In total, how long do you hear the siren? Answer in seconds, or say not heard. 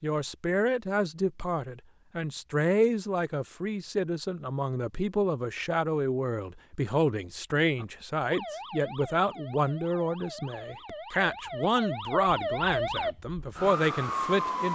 7 s.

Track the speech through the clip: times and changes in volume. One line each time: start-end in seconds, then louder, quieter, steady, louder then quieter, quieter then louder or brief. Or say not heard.
0.0-14.7 steady.